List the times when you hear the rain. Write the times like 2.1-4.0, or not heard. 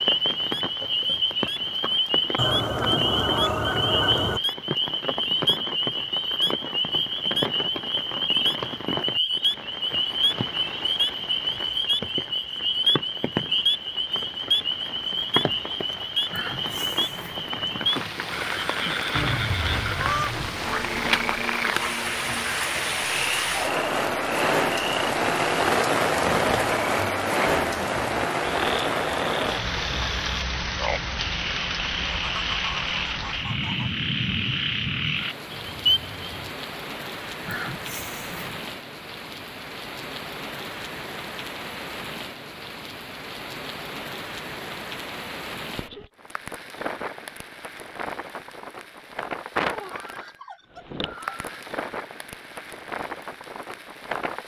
0.0-54.4.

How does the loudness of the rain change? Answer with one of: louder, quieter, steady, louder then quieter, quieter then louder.
louder then quieter.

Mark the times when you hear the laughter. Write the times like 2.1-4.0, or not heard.
16.3-18.7, 37.5-38.6.